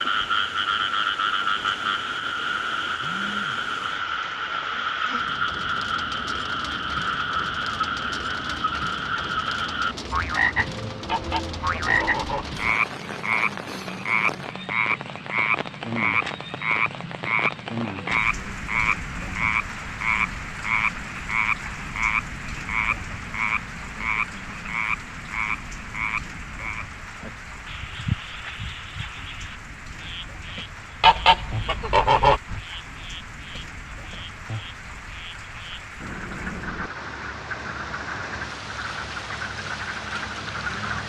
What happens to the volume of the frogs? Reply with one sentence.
The volume of the frogs goes down.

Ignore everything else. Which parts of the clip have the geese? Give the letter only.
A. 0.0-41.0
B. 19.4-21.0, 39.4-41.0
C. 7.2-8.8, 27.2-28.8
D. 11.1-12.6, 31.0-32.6
D.